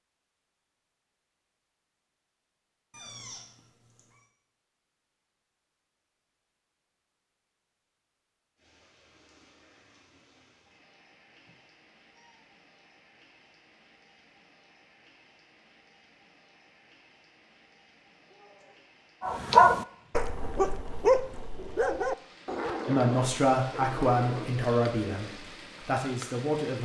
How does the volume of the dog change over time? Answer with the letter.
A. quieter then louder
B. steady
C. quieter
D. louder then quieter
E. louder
C.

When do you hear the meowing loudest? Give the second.
3 s.